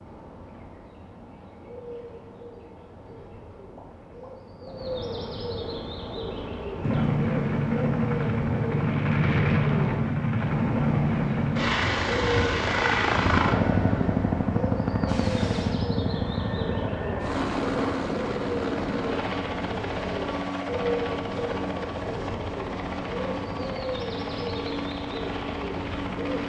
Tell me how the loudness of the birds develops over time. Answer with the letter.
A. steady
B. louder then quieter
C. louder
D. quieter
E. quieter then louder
C.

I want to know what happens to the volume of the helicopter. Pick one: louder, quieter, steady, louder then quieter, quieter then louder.
quieter.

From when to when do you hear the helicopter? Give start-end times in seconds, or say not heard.
6.8-26.4.